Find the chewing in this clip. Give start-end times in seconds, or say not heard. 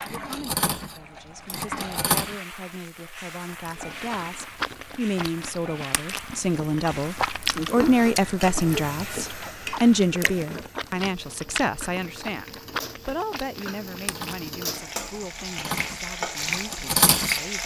3.5-15.0.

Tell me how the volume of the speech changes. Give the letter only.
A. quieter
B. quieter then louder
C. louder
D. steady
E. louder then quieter
E.